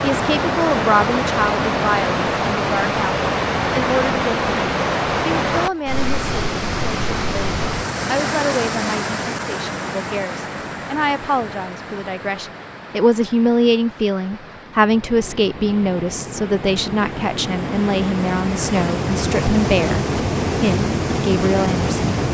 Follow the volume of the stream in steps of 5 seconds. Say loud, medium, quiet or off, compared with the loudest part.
loud, loud, quiet, medium, loud.